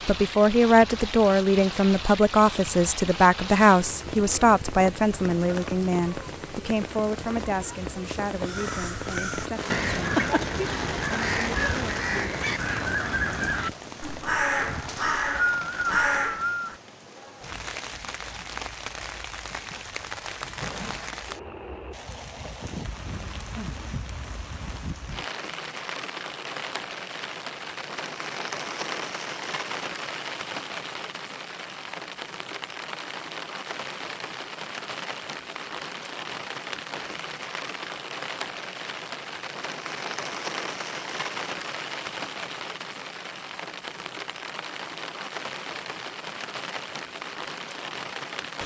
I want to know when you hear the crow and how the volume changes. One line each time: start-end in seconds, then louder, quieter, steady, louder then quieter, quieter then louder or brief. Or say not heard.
8.4-16.8 steady.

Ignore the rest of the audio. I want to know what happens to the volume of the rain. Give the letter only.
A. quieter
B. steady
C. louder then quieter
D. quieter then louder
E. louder
B.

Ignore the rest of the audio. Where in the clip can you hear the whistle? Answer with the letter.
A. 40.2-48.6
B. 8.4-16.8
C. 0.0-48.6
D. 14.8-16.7
D.